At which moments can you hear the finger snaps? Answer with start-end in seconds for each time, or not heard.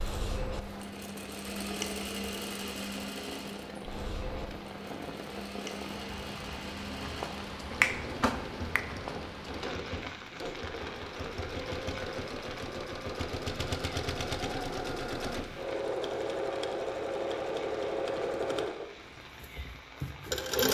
7.8-8.8.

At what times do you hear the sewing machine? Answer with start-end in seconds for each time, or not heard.
0.0-20.6.